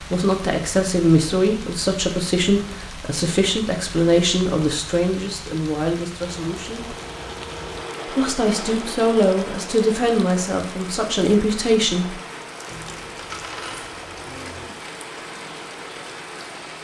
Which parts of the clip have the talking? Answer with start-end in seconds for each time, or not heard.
0.1-7.0, 8.1-12.2.